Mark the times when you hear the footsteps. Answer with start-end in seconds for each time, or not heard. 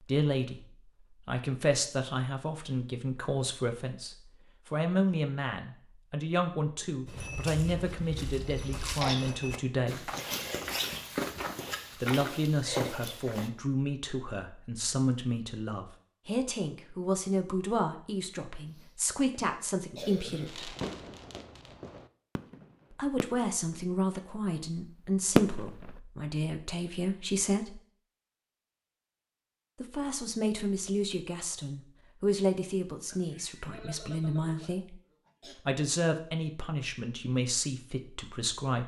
7.0-13.5.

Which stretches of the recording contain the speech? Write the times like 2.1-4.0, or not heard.
0.1-0.7, 1.2-10.1, 12.0-20.8, 22.9-27.8, 29.8-35.0, 35.6-38.8.